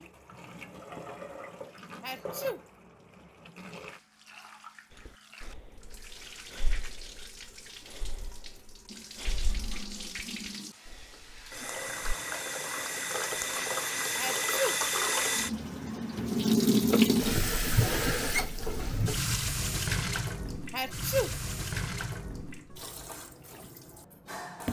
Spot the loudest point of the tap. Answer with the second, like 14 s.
17 s.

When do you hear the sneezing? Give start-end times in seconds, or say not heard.
2.0-2.6, 14.2-14.8, 20.7-21.4.